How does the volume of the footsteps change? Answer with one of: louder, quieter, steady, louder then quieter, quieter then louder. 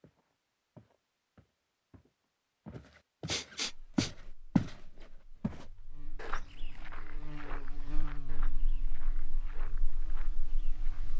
louder then quieter.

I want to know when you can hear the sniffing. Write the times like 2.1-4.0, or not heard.
3.2-4.1.